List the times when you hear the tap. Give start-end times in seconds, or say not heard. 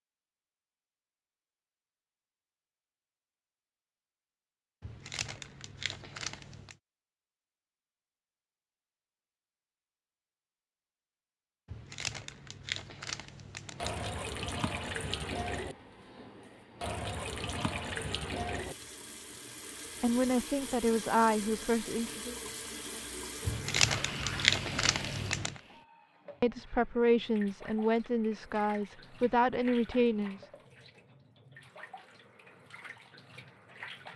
13.7-34.1.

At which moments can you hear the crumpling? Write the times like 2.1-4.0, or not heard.
4.8-6.8, 11.7-14.1, 23.4-25.6.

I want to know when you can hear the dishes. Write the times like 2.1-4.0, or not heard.
not heard.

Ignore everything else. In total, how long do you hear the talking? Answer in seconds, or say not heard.
6 s.